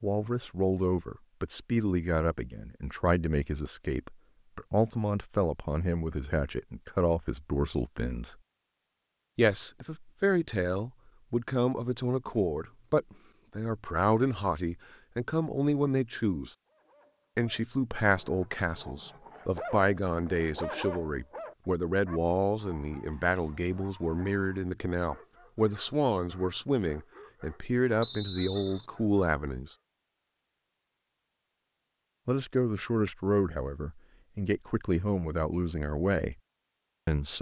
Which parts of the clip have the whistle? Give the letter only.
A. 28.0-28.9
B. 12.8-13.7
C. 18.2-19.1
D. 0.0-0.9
A.